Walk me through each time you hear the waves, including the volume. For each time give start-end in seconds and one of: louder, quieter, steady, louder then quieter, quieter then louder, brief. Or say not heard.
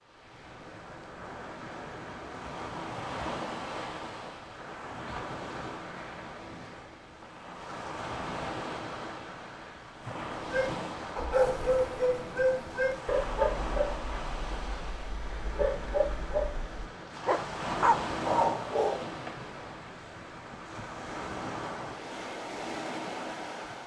0.1-23.8 steady.